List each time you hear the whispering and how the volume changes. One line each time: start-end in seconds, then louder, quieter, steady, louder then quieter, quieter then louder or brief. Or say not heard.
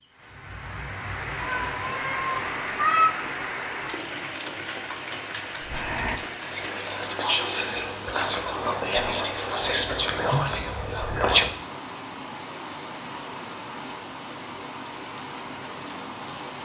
5.7-11.5 louder then quieter.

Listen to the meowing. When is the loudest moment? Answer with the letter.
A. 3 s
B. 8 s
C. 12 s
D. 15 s
A.